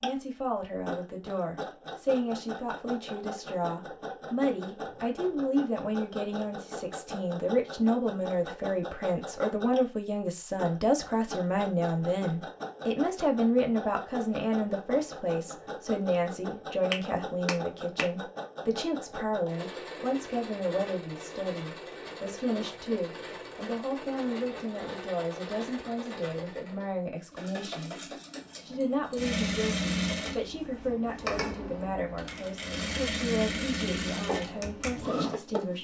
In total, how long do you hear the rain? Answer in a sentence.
You can't hear the rain here.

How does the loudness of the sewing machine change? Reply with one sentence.
The volume of the sewing machine goes up.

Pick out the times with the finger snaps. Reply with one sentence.
The finger snaps can be heard from 16.9 to 18.1 s.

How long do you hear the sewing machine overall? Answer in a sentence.
The sewing machine can be heard for 36 seconds in total.